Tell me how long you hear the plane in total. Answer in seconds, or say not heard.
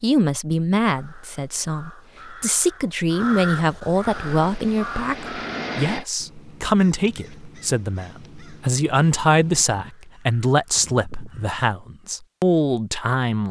2 s.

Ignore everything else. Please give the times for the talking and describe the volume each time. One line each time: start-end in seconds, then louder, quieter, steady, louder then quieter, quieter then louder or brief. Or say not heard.
0.0-13.4 steady.